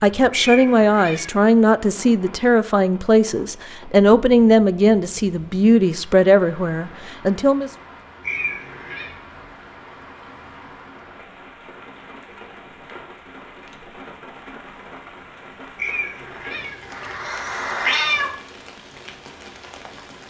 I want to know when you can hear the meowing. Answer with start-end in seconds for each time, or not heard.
0.3-1.4, 8.2-9.2, 15.8-18.3.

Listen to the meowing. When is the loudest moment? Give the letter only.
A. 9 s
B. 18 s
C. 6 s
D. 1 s
B.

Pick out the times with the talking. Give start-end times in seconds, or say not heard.
0.0-7.7.